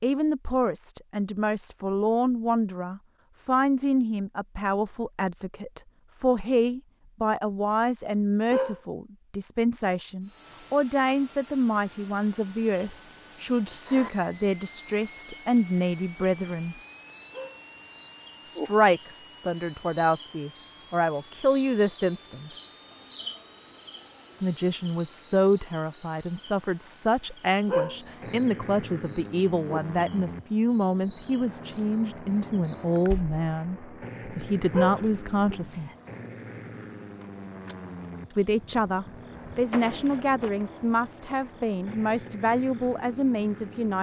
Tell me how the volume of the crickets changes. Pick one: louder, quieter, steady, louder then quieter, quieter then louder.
louder then quieter.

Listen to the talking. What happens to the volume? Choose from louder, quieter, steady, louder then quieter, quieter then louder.
steady.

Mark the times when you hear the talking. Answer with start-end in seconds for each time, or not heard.
0.0-16.8, 18.4-22.5, 24.4-35.9, 38.4-43.9.